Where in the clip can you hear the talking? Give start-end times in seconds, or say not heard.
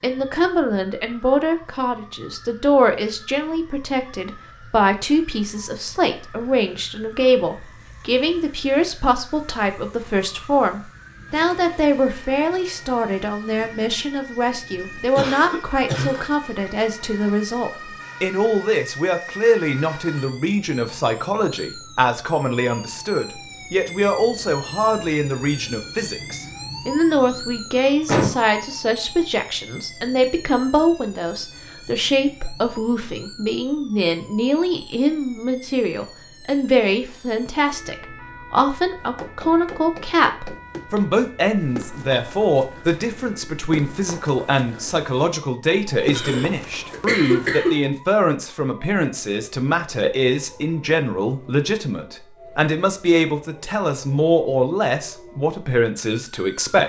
0.0-56.8.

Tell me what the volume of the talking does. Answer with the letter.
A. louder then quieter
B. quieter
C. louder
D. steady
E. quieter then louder
D.